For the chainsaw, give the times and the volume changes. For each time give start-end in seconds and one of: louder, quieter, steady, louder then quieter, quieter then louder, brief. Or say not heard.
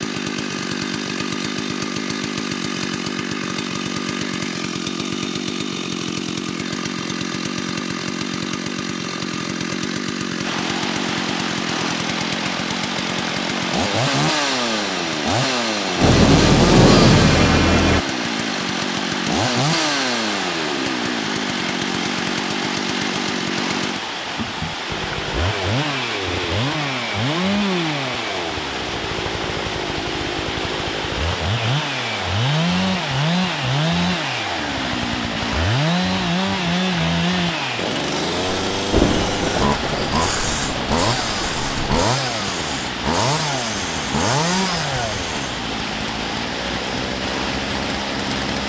0.0-48.6 steady.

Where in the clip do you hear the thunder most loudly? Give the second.
17 s.